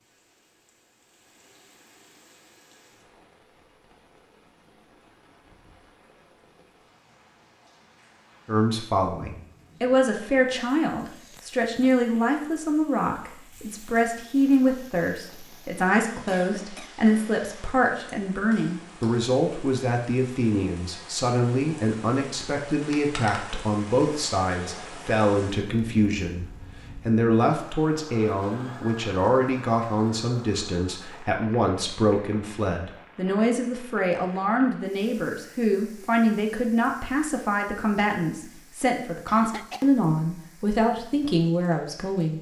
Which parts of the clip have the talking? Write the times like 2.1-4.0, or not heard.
8.4-42.3.